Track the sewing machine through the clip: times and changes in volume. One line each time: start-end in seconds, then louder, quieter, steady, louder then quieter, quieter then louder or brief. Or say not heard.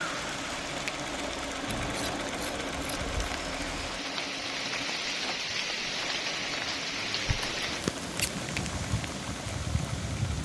0.0-10.4 quieter.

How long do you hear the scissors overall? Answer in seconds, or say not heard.
3 s.